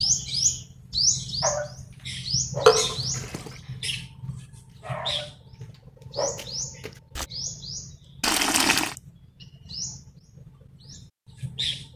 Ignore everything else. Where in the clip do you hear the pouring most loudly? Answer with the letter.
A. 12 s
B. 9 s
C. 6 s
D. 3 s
D.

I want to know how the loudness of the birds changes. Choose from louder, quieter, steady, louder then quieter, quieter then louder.
quieter.